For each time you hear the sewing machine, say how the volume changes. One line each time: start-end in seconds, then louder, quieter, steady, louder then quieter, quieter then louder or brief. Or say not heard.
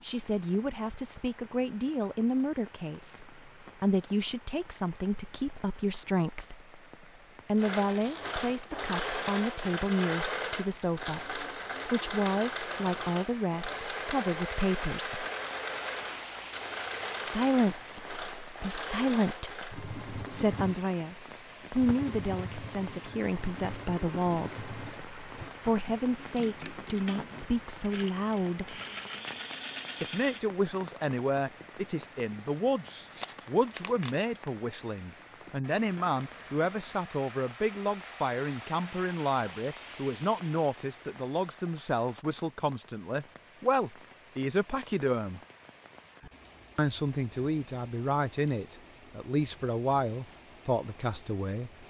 7.5-30.4 quieter.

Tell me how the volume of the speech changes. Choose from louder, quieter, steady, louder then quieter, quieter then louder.
steady.